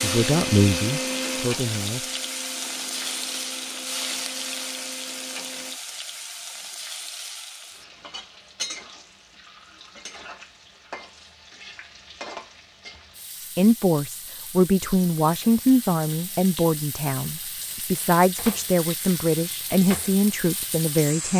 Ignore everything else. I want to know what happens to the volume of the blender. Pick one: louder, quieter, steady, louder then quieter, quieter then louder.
quieter.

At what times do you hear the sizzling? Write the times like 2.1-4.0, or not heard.
0.0-21.3.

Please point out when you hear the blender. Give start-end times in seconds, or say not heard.
0.0-5.8.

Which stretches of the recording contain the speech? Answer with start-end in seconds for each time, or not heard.
0.0-2.0, 13.6-21.3.